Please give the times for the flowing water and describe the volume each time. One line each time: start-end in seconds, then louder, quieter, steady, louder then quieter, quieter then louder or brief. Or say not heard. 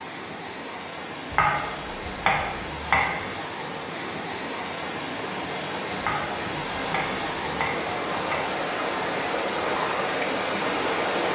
0.0-11.3 louder.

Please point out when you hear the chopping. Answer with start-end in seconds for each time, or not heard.
1.2-3.4, 6.0-8.4.